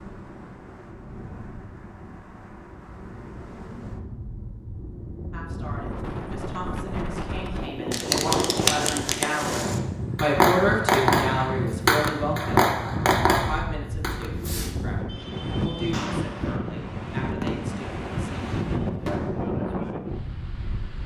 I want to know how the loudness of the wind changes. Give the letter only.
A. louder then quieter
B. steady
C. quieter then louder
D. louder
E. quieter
D.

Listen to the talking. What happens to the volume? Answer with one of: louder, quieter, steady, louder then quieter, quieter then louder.
louder then quieter.